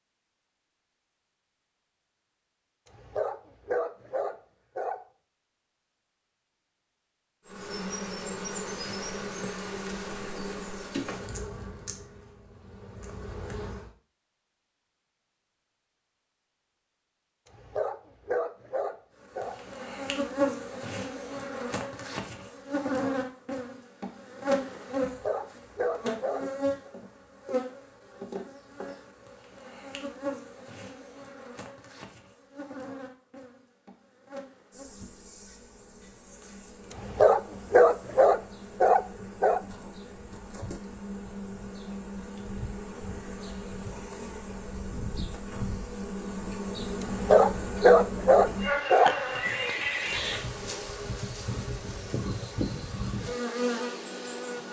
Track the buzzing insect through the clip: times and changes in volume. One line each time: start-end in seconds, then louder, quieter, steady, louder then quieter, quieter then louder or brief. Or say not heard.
7.5-13.9 quieter
19.2-54.6 quieter then louder.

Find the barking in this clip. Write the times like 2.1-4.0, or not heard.
2.9-5.0, 17.5-19.6, 25.0-26.9, 36.9-39.6, 47.0-49.1.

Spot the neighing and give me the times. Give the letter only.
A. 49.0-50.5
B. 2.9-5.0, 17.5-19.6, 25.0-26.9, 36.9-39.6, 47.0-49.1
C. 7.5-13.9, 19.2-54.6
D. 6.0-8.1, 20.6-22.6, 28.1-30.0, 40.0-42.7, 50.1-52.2
A.